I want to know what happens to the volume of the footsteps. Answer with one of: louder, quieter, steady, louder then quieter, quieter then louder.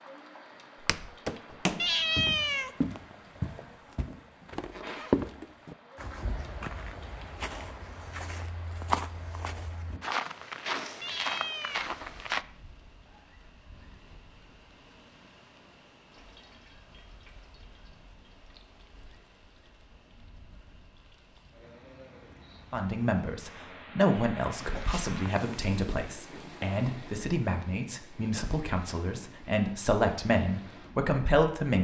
quieter then louder.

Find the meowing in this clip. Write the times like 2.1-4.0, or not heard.
1.8-2.8, 11.0-11.9, 24.6-25.6.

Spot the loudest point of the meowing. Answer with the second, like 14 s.
2 s.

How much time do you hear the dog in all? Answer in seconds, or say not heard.
not heard.